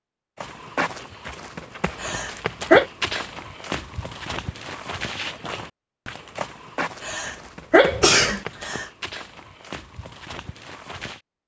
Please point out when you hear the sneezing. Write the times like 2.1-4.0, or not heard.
2.0-2.9, 7.0-8.8.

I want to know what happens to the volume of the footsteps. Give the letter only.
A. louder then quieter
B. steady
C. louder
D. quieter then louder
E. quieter
E.